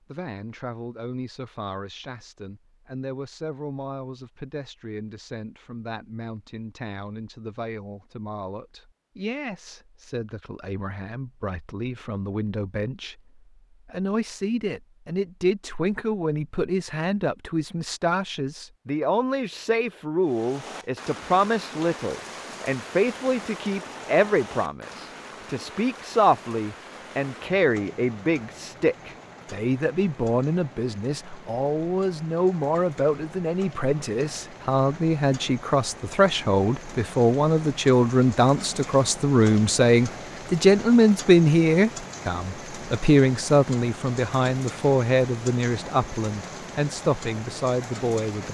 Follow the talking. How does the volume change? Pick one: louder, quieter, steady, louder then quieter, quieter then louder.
louder.